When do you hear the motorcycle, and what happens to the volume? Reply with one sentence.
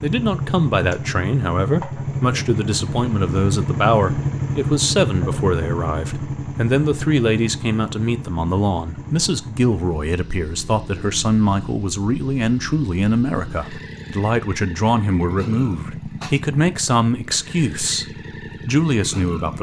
The motorcycle can be heard from 0.0 to 19.5 s, getting quieter.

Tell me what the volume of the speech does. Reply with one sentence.
The volume of the speech stays about the same.